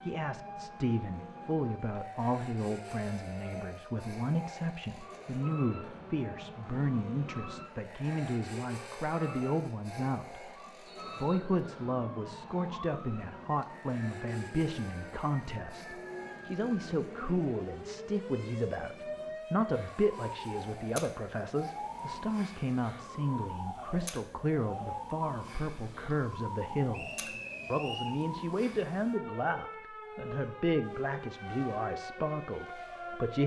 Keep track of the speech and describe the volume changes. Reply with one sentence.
The loudness of the speech stays about the same.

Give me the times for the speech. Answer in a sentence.
The speech can be heard from 0.1 to 10.5 s and from 11.2 to 33.4 s.